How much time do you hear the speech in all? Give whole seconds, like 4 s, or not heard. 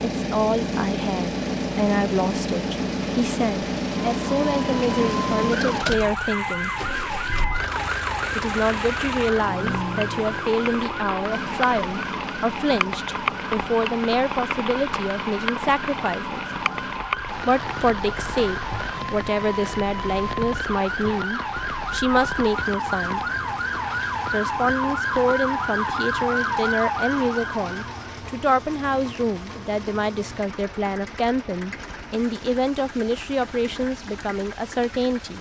32 s.